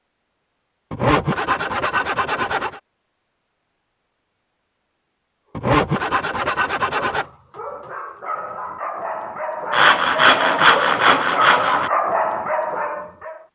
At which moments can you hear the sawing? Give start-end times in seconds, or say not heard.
0.9-2.8, 5.5-7.2, 9.7-11.9.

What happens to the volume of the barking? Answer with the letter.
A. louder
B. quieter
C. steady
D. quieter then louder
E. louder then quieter
A.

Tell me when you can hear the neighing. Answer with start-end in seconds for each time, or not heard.
not heard.